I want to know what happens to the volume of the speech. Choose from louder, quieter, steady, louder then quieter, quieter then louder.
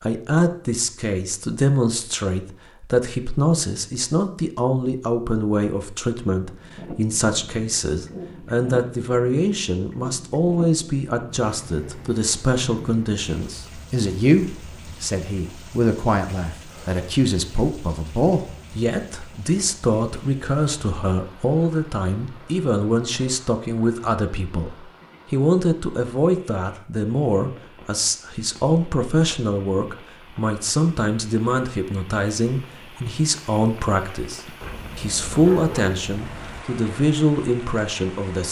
steady.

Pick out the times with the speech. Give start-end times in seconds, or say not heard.
0.0-38.4.